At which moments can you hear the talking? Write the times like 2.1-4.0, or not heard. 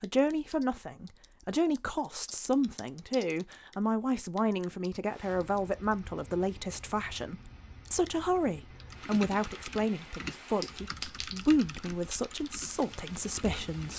0.0-13.9.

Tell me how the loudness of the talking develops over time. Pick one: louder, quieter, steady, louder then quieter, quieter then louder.
steady.